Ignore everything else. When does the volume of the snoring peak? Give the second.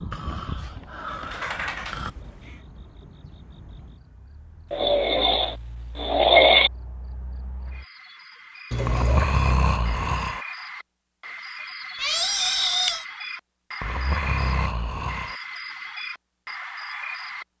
6 s.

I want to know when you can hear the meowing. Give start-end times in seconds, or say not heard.
1.1-2.5, 8.7-9.3, 11.9-13.1.